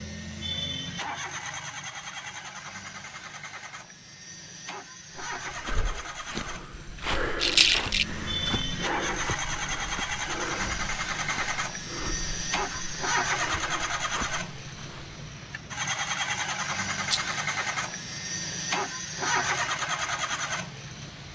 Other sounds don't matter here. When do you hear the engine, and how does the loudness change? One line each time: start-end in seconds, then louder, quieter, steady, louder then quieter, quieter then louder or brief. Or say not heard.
0.0-21.2 louder.